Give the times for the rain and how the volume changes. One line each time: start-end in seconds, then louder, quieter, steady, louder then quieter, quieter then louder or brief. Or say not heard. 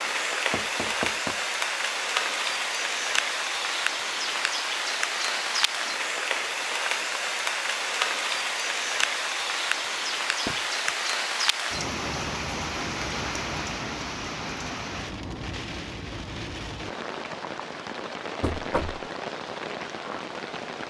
0.0-20.8 quieter.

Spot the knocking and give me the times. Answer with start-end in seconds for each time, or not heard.
0.5-1.4, 10.4-10.9, 18.4-19.1.